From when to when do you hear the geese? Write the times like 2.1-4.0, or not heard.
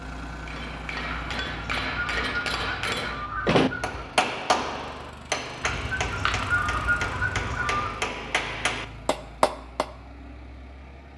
1.2-4.0, 5.6-7.9.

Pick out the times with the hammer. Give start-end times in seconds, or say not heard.
0.5-9.8.